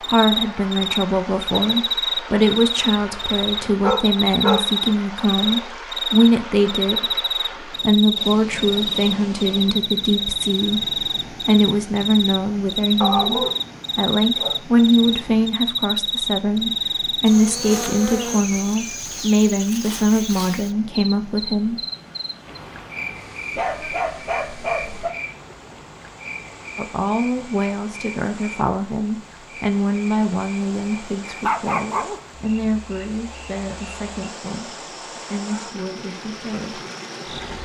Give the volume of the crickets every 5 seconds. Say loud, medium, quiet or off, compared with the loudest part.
loud, loud, loud, loud, medium, quiet, quiet, quiet.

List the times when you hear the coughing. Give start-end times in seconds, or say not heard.
not heard.